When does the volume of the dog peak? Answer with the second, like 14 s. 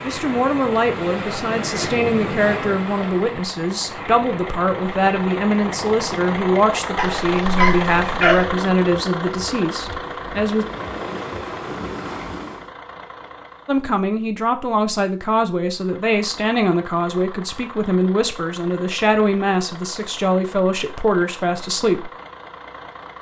8 s.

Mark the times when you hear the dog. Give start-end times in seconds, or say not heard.
7.0-8.4.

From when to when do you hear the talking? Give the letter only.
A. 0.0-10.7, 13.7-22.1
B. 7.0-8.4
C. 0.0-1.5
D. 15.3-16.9
A.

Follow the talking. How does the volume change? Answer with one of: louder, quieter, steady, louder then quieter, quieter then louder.
steady.